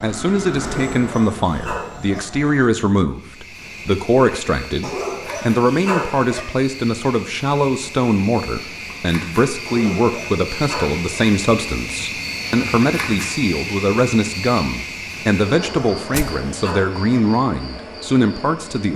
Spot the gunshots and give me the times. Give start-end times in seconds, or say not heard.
16.1-16.6.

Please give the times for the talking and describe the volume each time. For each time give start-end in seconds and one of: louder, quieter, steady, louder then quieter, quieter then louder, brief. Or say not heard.
0.0-18.9 steady.